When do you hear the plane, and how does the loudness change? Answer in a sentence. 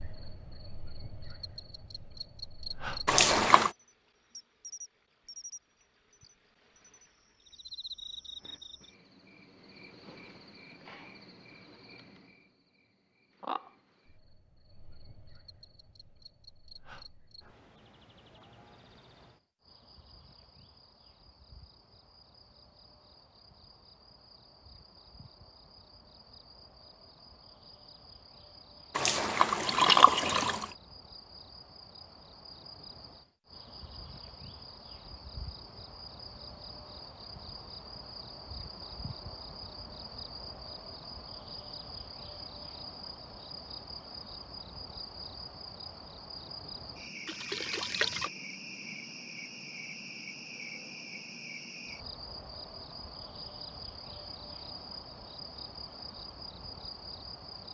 The plane can't be heard in this clip.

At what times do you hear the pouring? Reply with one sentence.
You can hear the pouring from 3.0 to 3.7 s, from 28.9 to 30.6 s and from 47.2 to 48.3 s.